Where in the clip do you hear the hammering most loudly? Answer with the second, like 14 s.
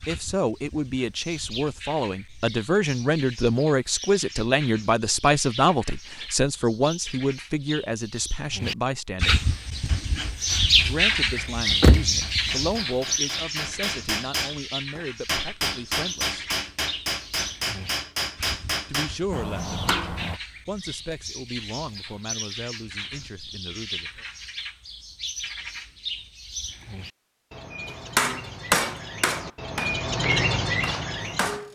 29 s.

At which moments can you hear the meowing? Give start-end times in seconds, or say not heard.
not heard.